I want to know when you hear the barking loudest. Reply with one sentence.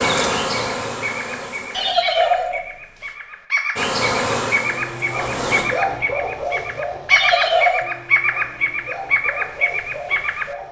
The volume of the barking peaks at 6 seconds.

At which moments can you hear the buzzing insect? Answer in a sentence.
The buzzing insect can be heard from 0.0 to 1.9 s and from 3.8 to 5.7 s.